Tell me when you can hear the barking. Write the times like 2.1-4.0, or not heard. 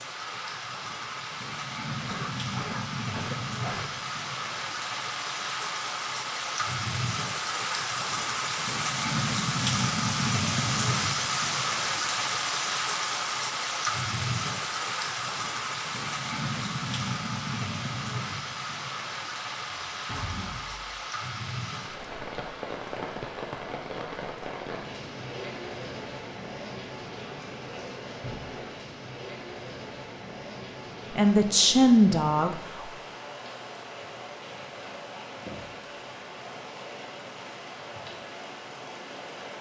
1.9-3.9.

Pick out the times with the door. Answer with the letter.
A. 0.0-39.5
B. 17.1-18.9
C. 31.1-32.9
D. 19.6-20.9
D.